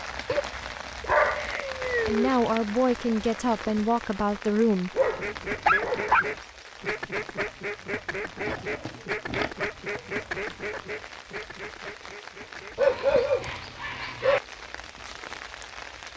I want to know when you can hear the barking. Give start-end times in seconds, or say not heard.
0.2-2.3, 5.0-6.3, 8.4-10.0, 12.8-14.4.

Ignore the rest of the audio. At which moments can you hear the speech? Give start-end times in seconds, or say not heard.
2.0-5.3.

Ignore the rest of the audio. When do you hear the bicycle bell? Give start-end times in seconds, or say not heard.
not heard.